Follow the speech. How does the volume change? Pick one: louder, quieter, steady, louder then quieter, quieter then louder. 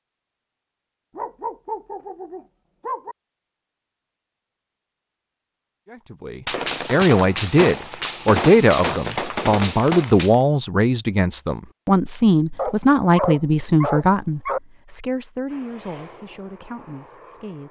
quieter.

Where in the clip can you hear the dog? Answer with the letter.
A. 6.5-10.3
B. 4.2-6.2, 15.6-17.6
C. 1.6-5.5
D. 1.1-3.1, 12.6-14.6
D.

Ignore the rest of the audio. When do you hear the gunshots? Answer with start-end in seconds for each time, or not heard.
6.5-10.3.